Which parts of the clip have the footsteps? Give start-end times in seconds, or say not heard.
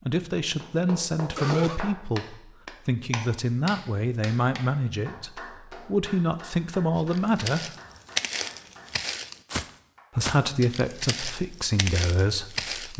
7.0-12.9.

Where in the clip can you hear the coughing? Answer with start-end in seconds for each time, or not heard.
0.8-1.8.